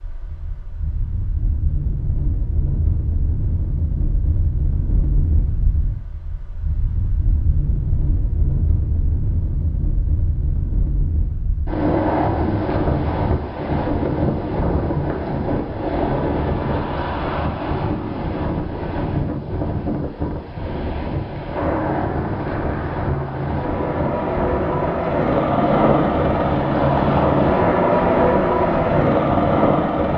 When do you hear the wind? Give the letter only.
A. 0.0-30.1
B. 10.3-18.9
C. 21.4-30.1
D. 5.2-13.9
A.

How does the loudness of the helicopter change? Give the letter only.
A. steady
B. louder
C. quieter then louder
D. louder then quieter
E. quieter
B.